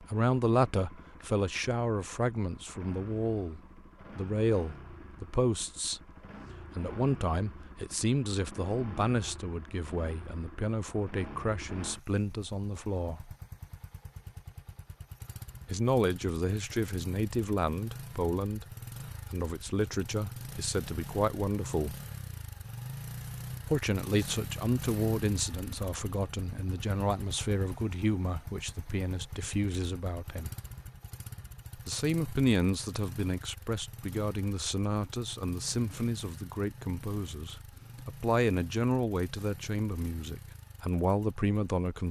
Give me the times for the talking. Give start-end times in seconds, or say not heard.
0.0-13.3, 15.7-18.6, 19.3-21.9, 23.6-30.5, 31.8-42.0.